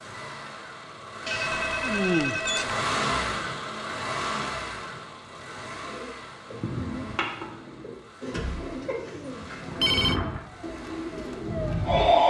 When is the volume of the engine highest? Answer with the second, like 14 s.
3 s.